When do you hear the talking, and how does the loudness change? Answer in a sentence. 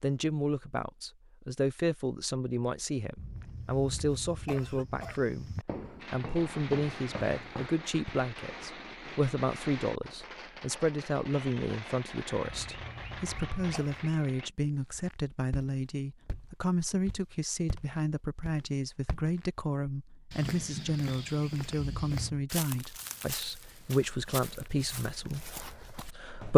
The talking can be heard from 0.0 to 26.5 s, at a steady volume.